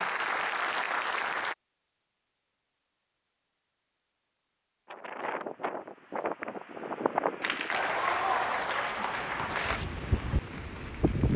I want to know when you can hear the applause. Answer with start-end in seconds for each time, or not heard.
0.0-1.6, 7.4-11.3.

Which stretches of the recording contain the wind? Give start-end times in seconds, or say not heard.
4.8-11.3.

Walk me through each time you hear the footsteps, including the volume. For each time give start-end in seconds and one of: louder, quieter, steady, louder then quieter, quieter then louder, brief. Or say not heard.
not heard.